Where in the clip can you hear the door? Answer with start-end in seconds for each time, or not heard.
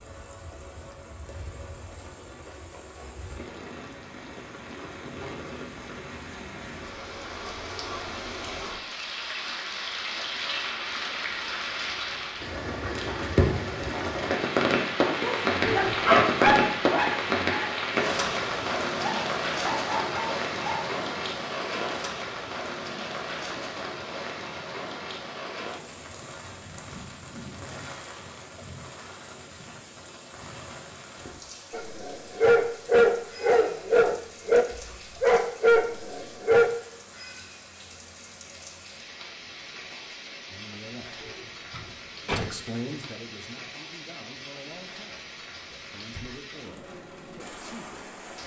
15.6-16.3, 41.2-42.5.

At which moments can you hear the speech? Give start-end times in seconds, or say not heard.
40.5-41.3, 42.4-48.1.